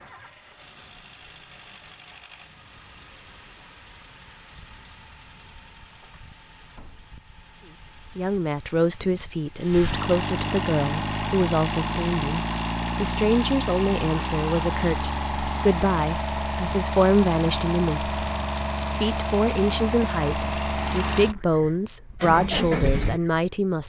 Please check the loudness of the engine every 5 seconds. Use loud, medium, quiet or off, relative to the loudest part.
quiet, quiet, loud, loud, loud.